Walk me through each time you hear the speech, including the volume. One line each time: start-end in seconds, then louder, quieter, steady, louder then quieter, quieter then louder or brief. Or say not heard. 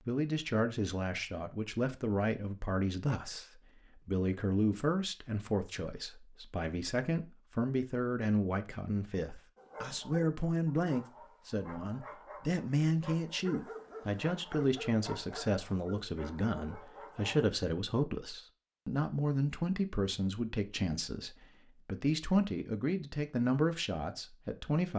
0.1-24.9 steady.